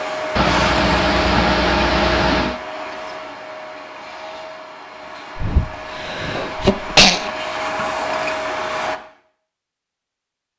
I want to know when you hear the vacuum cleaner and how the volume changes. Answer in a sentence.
The vacuum cleaner can be heard from 0.0 to 9.0 s, getting quieter then louder.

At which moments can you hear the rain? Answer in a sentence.
You can't hear the rain here.